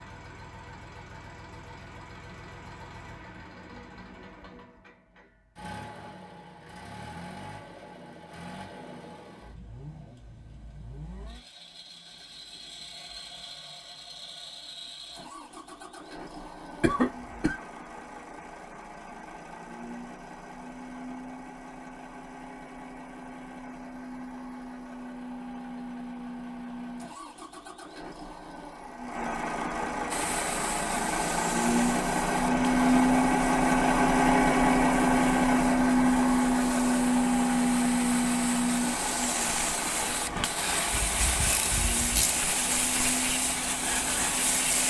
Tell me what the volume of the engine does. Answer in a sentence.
The loudness of the engine goes up.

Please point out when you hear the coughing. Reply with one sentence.
You can hear the coughing from 16.8 to 17.6 s.